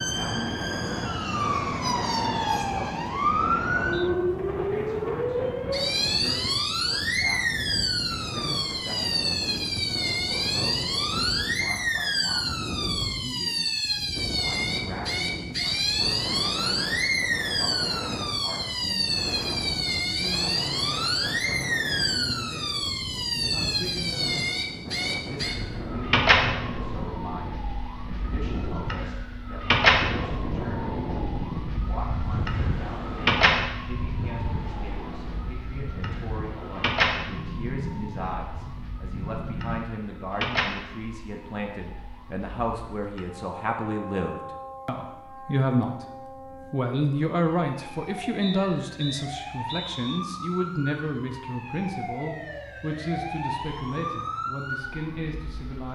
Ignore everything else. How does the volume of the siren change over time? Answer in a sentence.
The volume of the siren goes down.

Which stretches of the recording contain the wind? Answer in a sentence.
You can hear the wind from 0.0 to 39.8 s.